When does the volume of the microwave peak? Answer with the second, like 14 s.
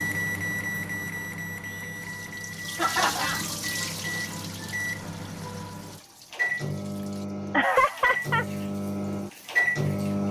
10 s.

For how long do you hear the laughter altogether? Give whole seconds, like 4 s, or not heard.
2 s.